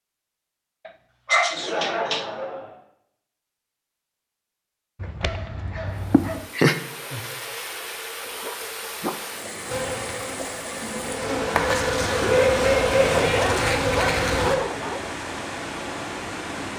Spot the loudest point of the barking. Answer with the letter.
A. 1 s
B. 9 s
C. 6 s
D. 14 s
A.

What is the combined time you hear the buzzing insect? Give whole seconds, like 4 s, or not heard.
5 s.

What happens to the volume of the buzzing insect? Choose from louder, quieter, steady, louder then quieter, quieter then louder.
louder.